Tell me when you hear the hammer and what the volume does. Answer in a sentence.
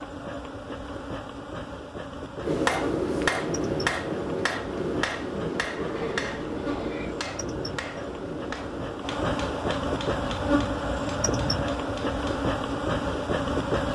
The hammer can be heard from 2.4 to 12.5 s, getting quieter.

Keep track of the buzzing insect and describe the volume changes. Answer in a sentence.
The volume of the buzzing insect goes up.